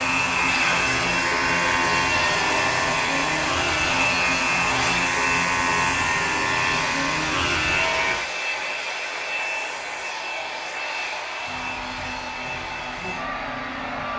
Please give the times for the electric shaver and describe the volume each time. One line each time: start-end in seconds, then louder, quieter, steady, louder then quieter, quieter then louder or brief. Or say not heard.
0.0-14.1 quieter.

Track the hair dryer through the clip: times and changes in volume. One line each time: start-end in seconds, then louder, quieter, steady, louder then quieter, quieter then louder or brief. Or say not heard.
0.0-14.1 quieter.